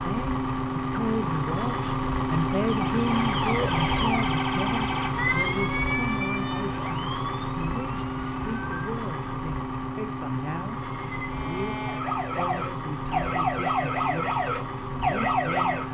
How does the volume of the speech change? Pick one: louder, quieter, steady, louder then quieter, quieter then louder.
quieter.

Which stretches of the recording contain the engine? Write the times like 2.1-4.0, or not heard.
0.0-15.8.